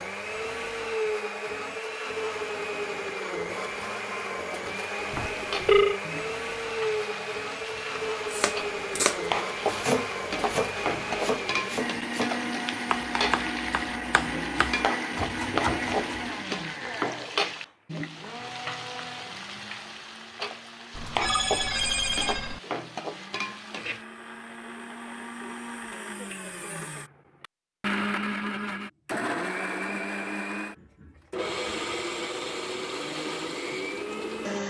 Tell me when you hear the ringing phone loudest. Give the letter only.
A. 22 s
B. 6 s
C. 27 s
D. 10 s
B.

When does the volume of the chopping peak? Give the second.
10 s.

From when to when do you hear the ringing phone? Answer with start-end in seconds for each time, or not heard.
5.1-6.0, 20.9-22.6.